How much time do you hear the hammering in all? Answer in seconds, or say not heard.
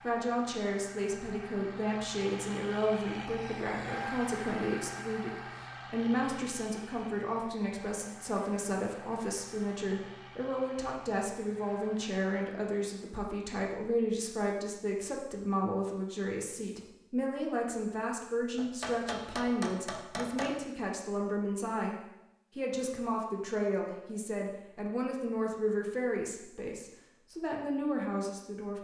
2 s.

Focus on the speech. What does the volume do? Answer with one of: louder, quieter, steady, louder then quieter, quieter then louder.
steady.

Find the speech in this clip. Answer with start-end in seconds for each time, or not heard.
0.0-21.9, 22.6-28.8.